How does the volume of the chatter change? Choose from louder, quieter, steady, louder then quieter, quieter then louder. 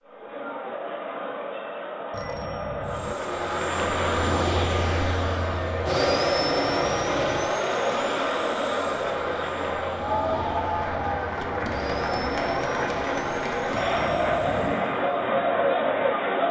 louder.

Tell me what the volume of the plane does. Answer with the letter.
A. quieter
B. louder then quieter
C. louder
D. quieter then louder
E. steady
A.